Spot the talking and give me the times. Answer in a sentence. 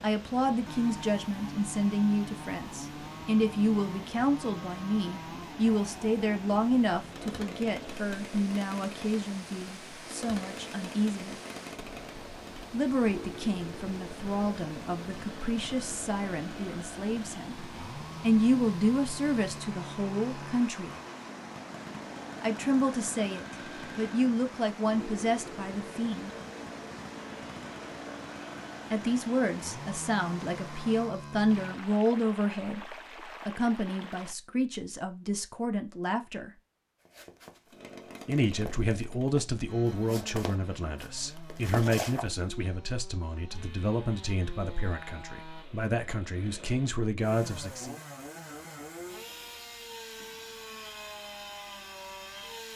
You can hear the talking from 0.0 to 11.3 s, from 12.7 to 20.9 s, from 22.4 to 26.3 s, from 28.9 to 36.5 s and from 38.2 to 48.0 s.